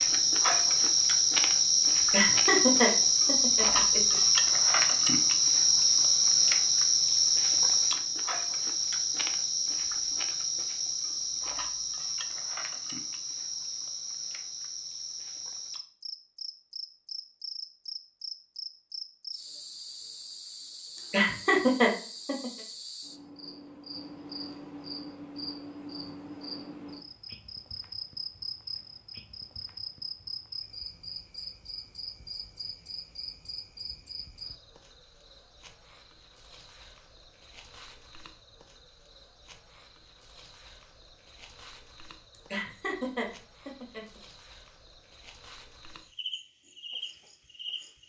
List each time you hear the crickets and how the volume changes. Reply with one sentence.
You can hear the crickets from 0.0 to 48.0 s, getting quieter.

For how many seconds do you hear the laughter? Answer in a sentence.
The laughter can be heard for 6 seconds in total.